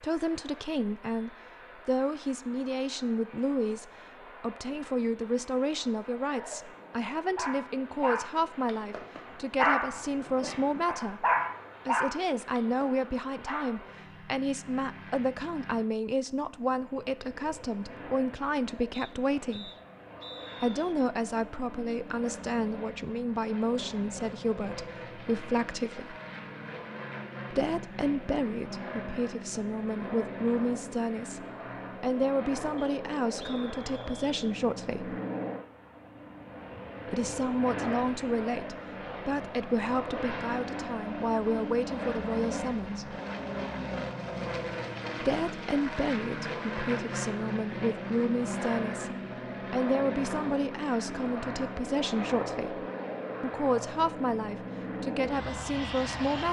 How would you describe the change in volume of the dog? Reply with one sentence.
The volume of the dog goes up, then down.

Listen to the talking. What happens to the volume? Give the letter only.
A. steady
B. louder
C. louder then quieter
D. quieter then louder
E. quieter
A.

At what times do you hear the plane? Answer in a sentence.
The plane can be heard from 0.0 to 56.4 s.